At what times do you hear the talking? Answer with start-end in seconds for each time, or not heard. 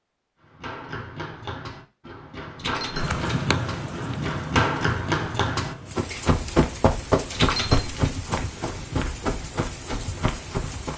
not heard.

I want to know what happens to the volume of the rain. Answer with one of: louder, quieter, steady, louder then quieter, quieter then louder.
quieter.